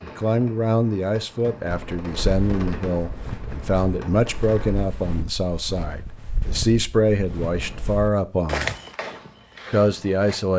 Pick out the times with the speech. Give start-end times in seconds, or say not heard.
0.0-8.7, 9.7-10.5.